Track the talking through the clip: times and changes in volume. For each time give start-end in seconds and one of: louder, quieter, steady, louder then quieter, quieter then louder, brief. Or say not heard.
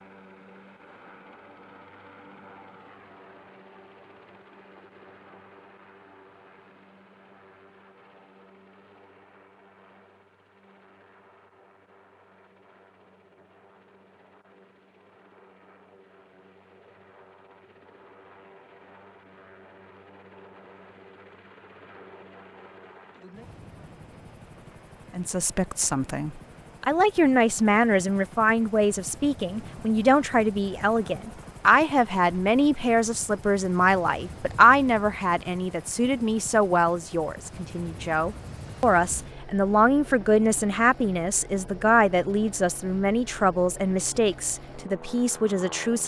25.1-46.0 steady.